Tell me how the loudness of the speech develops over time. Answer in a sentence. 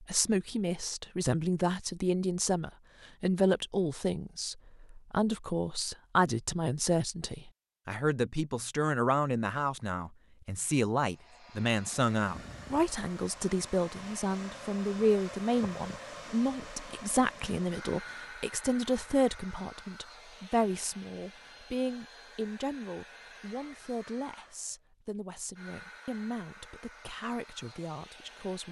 The volume of the speech goes down.